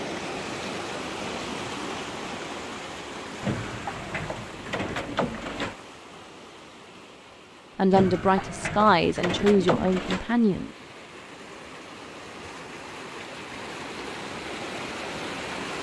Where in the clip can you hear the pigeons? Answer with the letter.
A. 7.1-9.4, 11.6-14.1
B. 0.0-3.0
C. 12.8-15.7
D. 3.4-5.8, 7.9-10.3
D.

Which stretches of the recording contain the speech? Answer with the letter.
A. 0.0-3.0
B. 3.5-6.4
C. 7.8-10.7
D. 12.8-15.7
C.